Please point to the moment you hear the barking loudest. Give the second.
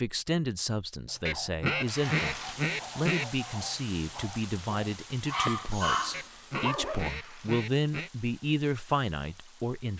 6 s.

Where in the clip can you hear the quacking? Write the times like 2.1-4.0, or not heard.
1.2-3.2, 6.1-8.1.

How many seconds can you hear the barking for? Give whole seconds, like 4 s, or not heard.
6 s.